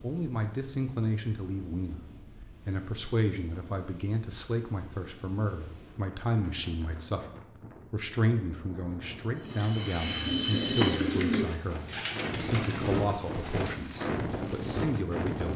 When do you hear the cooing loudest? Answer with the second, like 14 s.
11 s.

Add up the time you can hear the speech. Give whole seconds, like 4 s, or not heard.
15 s.